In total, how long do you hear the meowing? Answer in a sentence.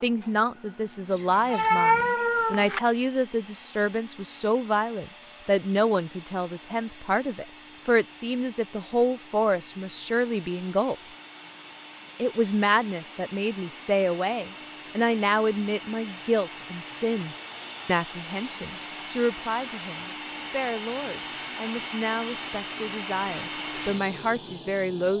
The meowing can be heard for 2 seconds in total.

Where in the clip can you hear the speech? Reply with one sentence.
You can hear the speech from 0.0 to 10.9 s and from 12.2 to 25.1 s.